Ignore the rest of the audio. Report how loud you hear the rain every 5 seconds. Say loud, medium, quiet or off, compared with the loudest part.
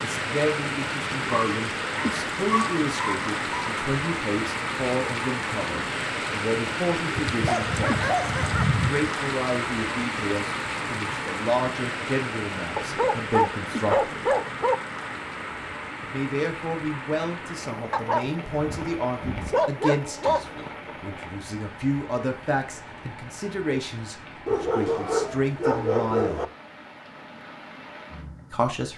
loud, loud, loud, medium, quiet, quiet.